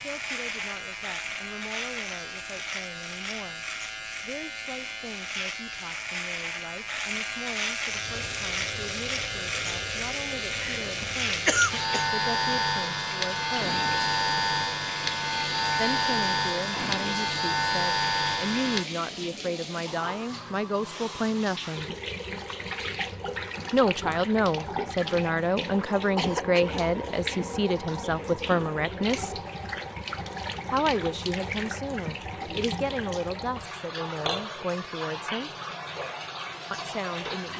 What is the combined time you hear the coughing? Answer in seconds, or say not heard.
2 s.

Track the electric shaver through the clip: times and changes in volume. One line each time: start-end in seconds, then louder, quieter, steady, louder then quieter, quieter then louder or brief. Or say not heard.
0.0-18.9 louder.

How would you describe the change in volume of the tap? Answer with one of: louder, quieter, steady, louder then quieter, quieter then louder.
steady.